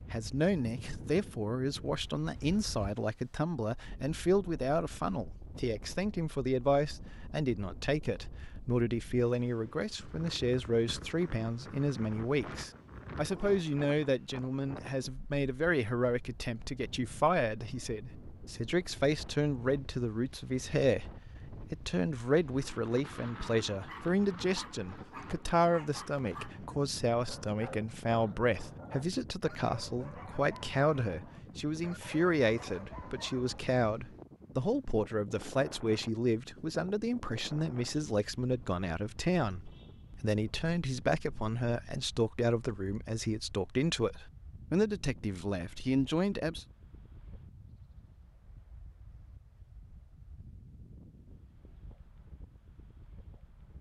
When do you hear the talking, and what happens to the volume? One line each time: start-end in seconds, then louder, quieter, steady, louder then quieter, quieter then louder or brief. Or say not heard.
0.1-46.6 steady.